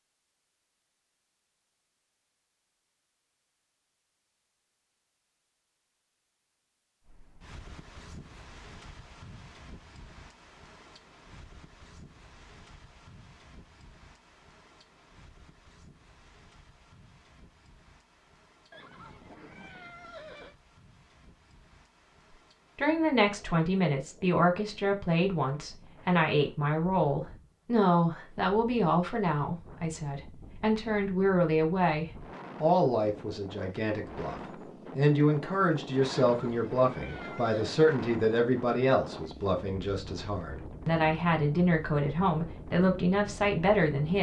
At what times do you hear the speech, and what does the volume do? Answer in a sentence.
The speech can be heard from 22.8 to 44.1 s, at a steady volume.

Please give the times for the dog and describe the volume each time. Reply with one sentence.
You can't hear the dog here.